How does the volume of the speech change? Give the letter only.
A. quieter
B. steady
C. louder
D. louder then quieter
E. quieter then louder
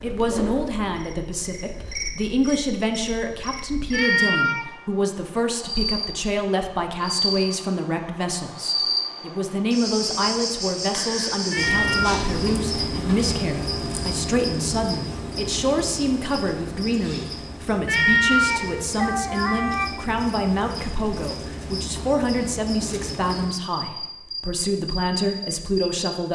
B.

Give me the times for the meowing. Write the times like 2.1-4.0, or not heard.
3.9-4.7, 11.5-12.2, 17.9-19.9.